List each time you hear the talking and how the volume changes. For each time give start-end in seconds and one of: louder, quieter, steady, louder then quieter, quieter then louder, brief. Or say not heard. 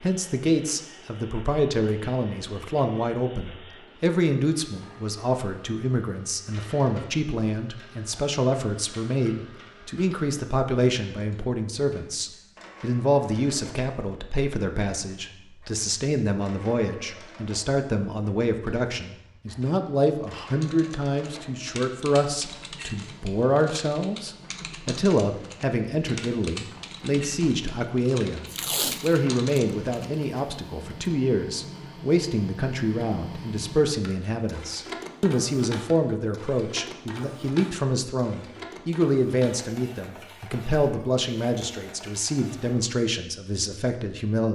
0.0-44.4 steady.